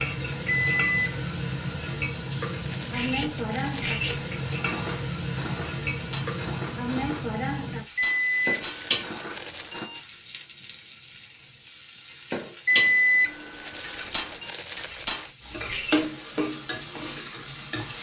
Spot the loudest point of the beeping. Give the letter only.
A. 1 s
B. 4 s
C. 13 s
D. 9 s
C.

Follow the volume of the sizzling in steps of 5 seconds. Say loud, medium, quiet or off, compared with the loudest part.
loud, loud, medium, loud.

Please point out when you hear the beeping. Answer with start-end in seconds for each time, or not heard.
0.5-1.2, 8.0-10.0, 12.7-14.6.